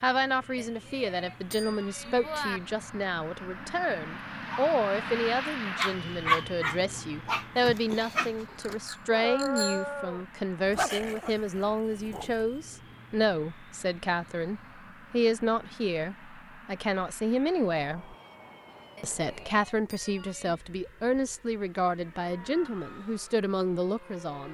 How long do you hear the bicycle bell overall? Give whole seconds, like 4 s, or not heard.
5 s.